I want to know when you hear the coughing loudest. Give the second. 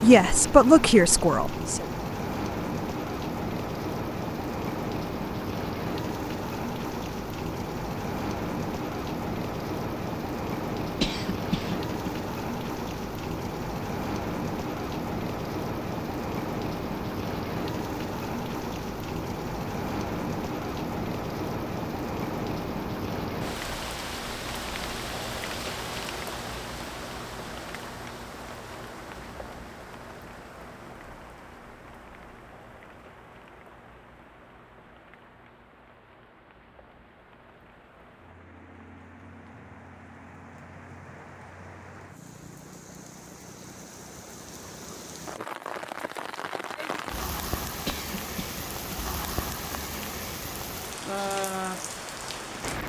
11 s.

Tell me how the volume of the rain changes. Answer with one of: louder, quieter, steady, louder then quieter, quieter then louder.
quieter then louder.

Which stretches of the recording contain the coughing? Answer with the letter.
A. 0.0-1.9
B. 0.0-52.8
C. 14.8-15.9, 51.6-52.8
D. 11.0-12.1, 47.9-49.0
D.